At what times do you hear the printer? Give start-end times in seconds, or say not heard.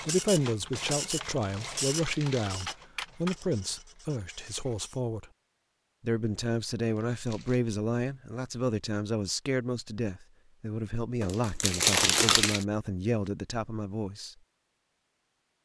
0.0-5.0.